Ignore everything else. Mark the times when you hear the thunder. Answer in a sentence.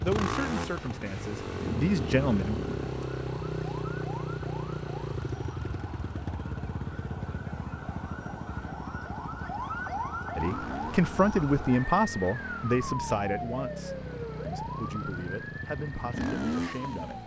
The thunder can be heard from 1.1 to 3.0 s.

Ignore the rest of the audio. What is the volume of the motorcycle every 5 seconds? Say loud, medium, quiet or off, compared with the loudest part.
loud, medium, medium, loud.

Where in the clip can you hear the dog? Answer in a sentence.
The dog can't be heard in this clip.